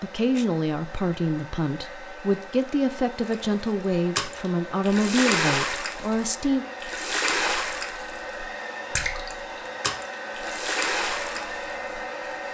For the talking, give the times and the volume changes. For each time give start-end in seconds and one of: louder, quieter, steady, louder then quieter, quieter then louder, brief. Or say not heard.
0.0-6.7 steady.